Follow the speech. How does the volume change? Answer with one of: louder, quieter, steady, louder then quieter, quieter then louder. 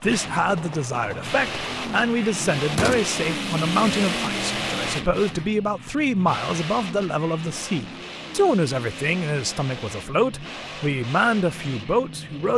steady.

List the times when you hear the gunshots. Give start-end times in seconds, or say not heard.
0.5-3.0.